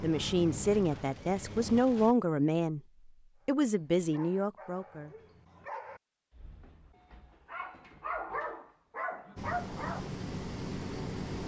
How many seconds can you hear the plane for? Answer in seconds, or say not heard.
4 s.